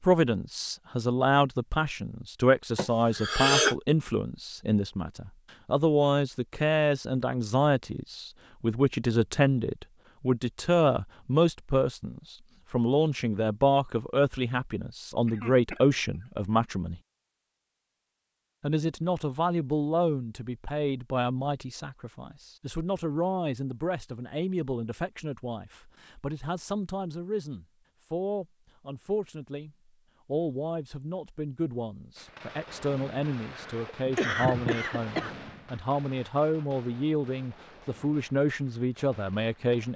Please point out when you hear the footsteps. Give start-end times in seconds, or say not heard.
not heard.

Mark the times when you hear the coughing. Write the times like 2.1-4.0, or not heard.
2.8-3.8, 15.2-16.2, 33.5-35.4.